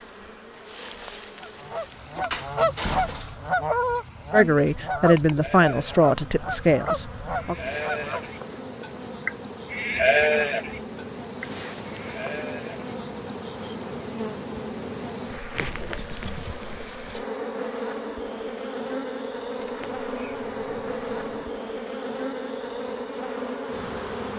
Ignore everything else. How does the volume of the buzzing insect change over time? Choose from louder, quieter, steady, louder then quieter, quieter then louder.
louder.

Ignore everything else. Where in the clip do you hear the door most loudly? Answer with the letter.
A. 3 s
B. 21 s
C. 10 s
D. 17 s
A.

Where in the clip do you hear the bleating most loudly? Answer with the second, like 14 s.
10 s.